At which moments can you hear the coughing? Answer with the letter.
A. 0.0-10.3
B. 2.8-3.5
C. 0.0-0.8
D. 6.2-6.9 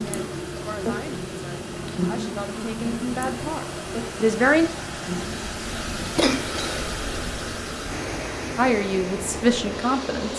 D.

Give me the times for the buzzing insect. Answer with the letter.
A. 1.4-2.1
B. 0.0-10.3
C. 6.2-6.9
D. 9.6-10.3
B.